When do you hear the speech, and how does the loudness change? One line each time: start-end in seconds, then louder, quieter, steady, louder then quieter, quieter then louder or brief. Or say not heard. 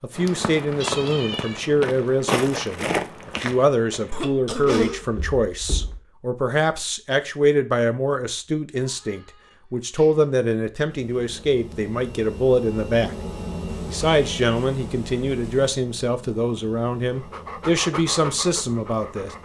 0.0-13.2 steady
13.8-19.3 steady.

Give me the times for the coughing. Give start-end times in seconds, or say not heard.
4.1-5.0.